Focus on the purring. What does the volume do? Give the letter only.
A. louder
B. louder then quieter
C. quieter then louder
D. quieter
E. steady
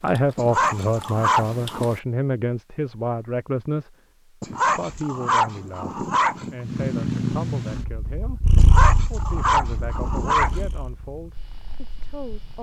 D.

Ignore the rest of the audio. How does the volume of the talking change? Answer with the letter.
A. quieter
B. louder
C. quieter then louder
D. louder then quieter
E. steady
A.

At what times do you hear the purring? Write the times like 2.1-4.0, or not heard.
6.5-12.5.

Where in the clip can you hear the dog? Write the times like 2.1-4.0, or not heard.
0.3-1.9, 4.4-6.5, 8.6-10.7.